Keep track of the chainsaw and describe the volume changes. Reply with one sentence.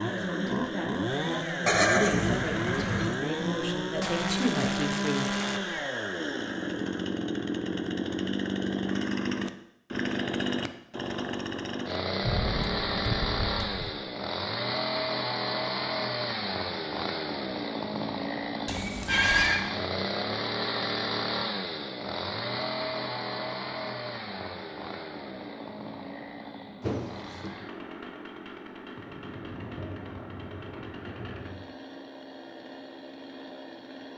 The loudness of the chainsaw goes down.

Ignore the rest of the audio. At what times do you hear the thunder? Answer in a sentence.
You can hear the thunder from 12.2 to 13.9 s and from 28.9 to 31.6 s.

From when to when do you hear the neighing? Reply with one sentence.
The neighing can be heard from 1.6 to 3.1 s, from 18.6 to 19.6 s and from 26.8 to 27.6 s.